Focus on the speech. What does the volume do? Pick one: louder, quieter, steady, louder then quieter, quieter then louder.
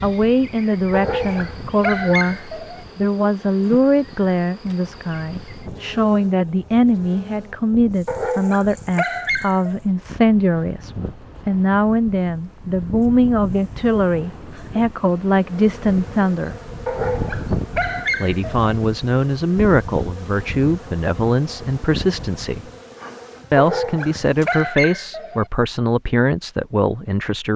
steady.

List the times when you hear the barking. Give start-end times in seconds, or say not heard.
0.9-2.9, 8.1-9.8, 16.9-18.7, 23.6-25.4.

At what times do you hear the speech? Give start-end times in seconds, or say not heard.
0.0-16.6, 18.2-22.6, 23.5-27.5.